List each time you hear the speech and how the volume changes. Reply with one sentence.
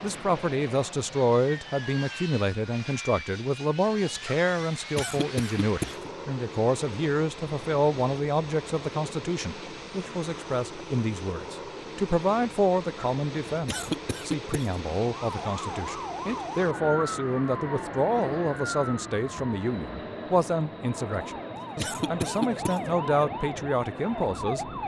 You can hear the speech from 0.0 to 24.6 s, at a steady volume.